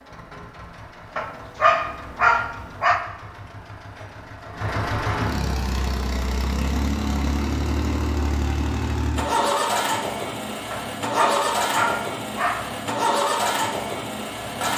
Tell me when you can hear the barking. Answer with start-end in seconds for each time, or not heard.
1.1-3.0, 10.7-12.7.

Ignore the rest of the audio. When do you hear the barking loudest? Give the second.
2 s.